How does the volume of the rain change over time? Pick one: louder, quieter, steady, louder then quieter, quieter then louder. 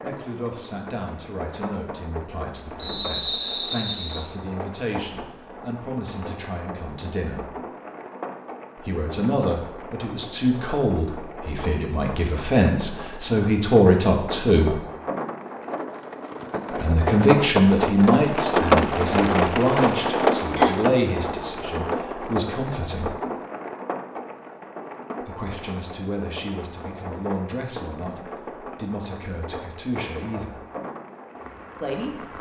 louder then quieter.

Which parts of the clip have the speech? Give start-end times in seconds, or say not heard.
0.0-7.5, 8.8-14.8, 16.7-23.1, 25.2-30.6, 31.8-32.3.